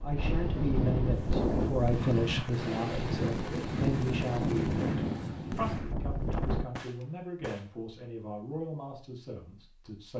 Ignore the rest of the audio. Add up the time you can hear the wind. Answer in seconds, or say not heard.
7 s.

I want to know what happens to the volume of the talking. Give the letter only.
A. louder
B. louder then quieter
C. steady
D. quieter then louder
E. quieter
E.